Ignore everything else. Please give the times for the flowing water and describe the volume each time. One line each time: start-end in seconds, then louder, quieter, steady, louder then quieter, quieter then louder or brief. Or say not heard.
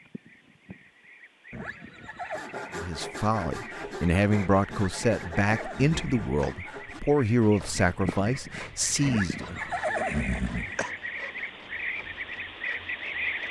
not heard.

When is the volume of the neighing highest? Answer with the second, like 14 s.
10 s.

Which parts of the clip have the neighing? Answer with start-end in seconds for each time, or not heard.
1.5-2.5, 4.7-6.5, 9.1-10.9.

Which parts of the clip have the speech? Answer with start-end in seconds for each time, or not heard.
2.8-9.7.